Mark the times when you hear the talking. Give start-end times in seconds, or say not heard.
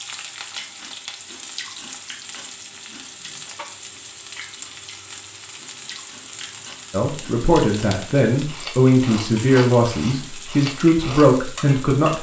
6.9-12.1.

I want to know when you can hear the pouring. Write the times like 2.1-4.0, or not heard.
not heard.